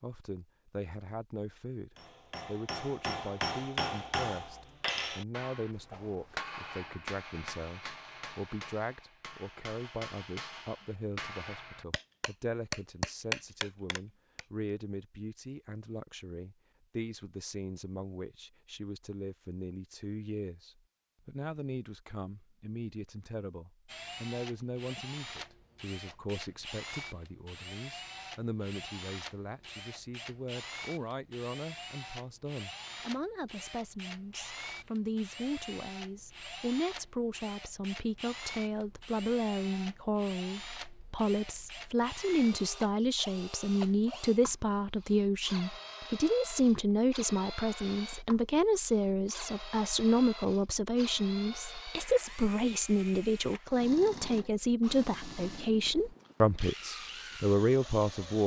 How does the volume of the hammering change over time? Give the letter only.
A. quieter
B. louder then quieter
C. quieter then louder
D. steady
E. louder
C.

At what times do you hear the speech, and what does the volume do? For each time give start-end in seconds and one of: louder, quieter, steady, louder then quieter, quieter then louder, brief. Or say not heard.
0.0-58.4 louder.